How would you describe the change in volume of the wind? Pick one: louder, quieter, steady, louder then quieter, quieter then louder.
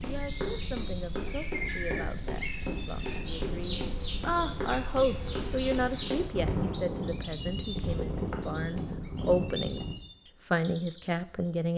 louder.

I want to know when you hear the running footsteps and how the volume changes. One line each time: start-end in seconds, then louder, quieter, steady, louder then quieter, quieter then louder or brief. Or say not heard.
0.0-6.6 steady.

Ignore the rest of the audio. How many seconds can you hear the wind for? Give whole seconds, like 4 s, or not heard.
10 s.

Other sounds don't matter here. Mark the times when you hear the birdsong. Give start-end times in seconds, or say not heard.
0.0-11.5.